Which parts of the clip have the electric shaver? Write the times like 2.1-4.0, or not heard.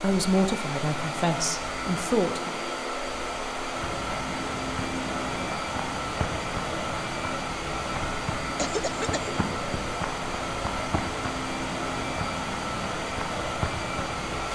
not heard.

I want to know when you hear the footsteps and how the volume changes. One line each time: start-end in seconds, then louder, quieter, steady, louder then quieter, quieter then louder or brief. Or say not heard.
3.7-14.4 steady.